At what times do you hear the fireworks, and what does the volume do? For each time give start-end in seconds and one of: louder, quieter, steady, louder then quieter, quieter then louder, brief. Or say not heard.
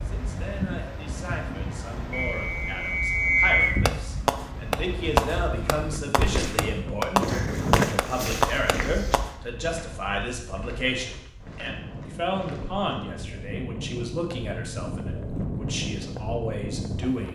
3.9-9.3 quieter then louder.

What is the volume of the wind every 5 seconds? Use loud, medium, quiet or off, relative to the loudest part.
loud, loud, medium, loud.